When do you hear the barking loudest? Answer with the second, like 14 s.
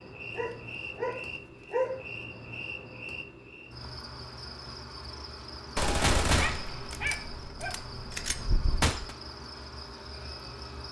2 s.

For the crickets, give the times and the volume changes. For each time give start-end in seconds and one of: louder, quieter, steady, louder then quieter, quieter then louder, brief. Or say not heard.
0.0-10.8 steady.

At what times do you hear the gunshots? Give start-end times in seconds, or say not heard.
5.8-9.2.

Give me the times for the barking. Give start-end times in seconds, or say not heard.
0.3-2.0, 6.2-7.8.